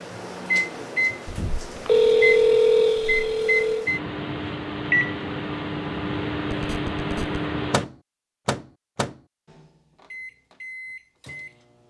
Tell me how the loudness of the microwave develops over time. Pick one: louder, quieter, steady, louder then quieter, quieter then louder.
quieter.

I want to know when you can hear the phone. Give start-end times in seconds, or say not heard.
1.2-3.9, 6.5-7.4.